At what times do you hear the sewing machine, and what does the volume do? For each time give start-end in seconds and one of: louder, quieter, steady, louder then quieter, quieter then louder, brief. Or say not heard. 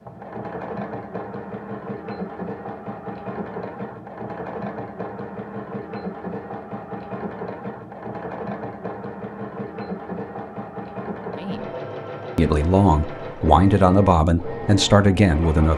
0.0-15.7 steady.